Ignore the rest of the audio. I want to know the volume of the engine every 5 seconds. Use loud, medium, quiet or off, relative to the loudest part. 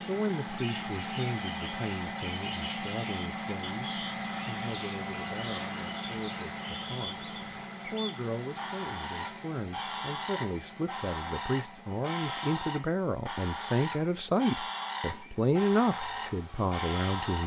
loud, loud, quiet, quiet.